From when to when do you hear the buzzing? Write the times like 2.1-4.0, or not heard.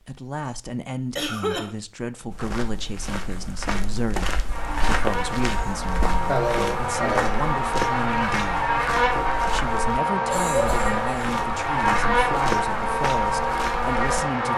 4.5-14.5.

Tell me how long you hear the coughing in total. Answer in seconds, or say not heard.
3 s.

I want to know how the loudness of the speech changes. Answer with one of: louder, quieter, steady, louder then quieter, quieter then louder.
steady.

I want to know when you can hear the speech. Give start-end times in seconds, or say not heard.
0.1-8.7, 9.5-14.5.